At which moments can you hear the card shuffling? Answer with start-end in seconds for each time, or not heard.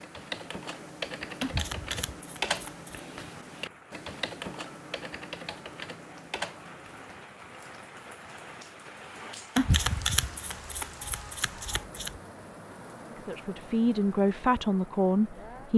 1.4-3.0, 9.6-12.2.